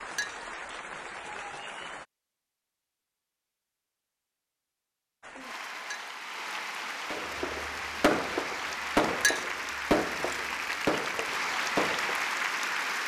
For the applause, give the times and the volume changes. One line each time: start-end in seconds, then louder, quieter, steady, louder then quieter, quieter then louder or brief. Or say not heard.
0.0-2.0 brief
5.2-13.0 louder.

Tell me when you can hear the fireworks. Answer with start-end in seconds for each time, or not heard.
7.1-12.2.